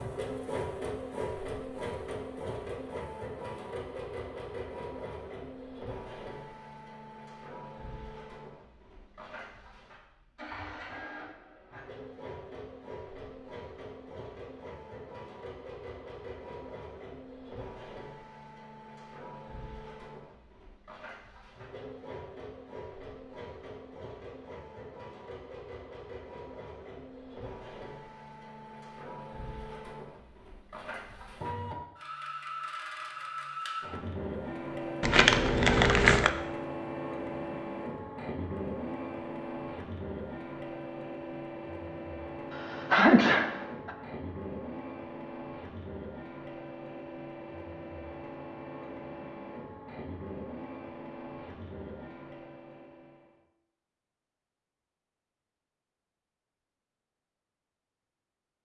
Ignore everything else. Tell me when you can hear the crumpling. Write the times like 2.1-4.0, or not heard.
35.0-36.3.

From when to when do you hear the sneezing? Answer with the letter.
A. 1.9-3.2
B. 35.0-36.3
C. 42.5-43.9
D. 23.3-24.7
C.